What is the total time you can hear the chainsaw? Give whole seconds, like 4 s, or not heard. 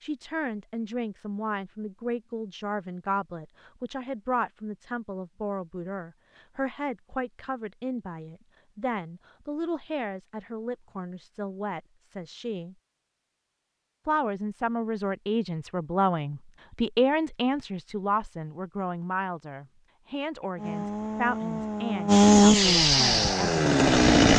4 s.